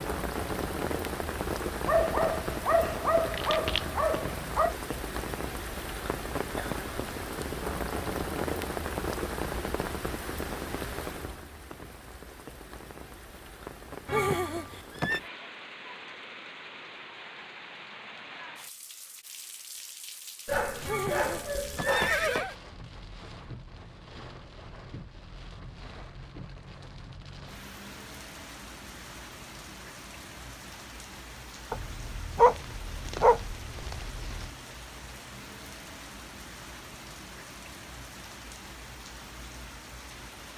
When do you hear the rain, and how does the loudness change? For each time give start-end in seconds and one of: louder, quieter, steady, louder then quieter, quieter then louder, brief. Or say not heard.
0.0-40.5 quieter.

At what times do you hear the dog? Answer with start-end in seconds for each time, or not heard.
1.9-4.8, 20.4-22.4, 31.7-34.5.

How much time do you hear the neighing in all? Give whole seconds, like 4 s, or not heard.
3 s.